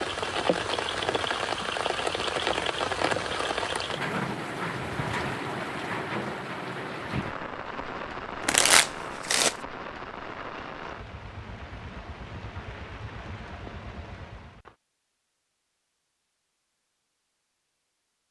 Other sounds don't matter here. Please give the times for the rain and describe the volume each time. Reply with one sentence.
You can hear the rain from 0.0 to 14.8 s, getting quieter.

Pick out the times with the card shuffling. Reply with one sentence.
The card shuffling can be heard from 8.4 to 9.6 s.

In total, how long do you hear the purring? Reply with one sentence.
The purring can't be heard in this clip.